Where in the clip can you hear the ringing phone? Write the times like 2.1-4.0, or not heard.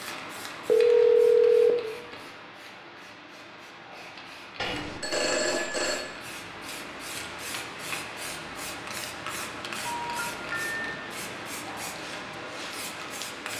0.7-1.7, 4.6-6.0, 9.8-10.9.